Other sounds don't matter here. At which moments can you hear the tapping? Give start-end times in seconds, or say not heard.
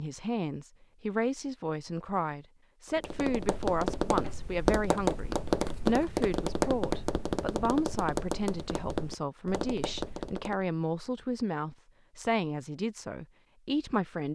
3.0-10.7.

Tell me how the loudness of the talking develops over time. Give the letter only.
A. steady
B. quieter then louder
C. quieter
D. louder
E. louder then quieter
A.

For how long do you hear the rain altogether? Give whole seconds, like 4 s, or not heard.
not heard.